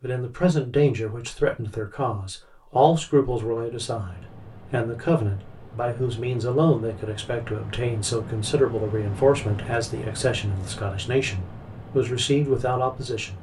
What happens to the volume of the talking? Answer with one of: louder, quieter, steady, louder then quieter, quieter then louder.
steady.